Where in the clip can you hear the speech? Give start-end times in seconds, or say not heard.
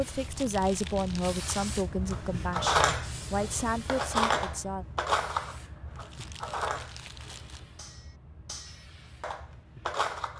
0.0-4.8.